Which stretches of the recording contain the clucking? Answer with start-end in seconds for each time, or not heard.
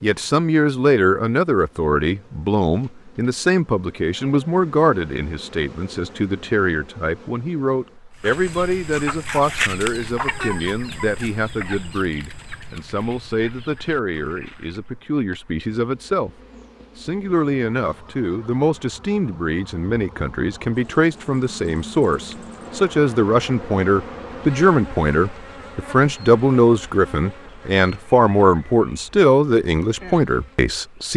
8.2-14.9.